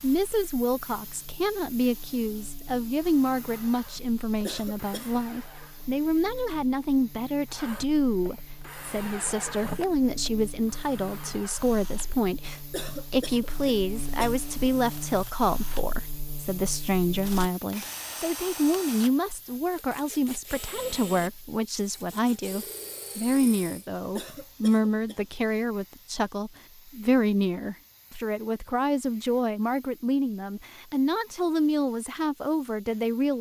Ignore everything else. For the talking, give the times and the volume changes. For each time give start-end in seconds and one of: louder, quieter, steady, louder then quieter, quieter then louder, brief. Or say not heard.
0.0-33.3 steady.